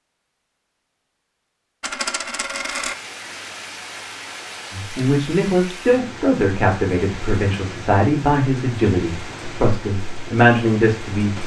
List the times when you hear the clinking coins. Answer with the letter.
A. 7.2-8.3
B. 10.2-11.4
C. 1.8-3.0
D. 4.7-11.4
C.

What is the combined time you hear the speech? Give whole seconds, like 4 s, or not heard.
7 s.